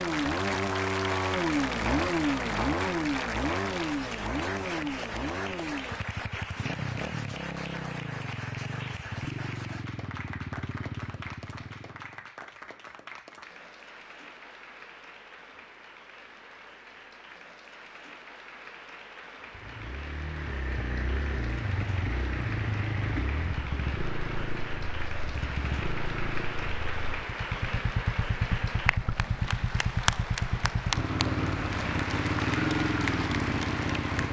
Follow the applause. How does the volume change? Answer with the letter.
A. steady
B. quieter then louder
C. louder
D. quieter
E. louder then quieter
B.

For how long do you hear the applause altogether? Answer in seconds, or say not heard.
34 s.